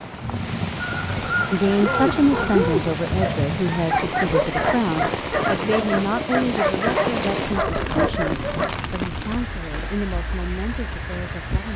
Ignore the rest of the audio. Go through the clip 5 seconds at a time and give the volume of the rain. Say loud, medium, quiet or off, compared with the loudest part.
loud, loud, medium.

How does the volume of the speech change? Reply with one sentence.
The volume of the speech goes down.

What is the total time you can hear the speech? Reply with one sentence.
The speech can be heard for 10 seconds in total.